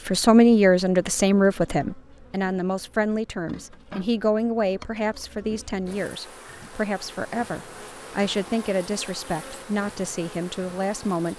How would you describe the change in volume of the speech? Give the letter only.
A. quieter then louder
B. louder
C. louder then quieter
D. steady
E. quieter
E.